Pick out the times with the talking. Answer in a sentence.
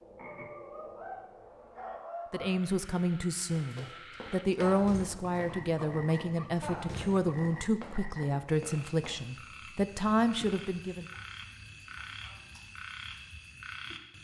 The talking can be heard from 2.3 to 11.1 s.